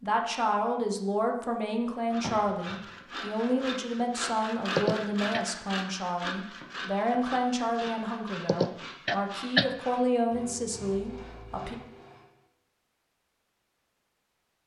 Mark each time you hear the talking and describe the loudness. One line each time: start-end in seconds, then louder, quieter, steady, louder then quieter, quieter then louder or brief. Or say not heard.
0.0-11.8 steady.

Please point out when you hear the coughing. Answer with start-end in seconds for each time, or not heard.
4.8-5.5, 8.4-9.7.